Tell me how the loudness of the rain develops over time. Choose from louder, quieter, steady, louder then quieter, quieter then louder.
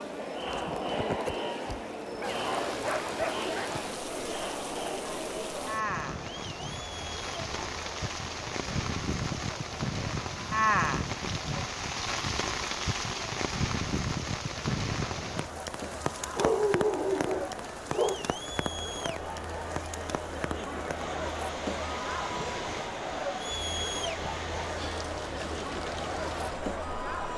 louder then quieter.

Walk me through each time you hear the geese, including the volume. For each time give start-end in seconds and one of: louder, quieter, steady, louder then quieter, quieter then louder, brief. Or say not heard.
not heard.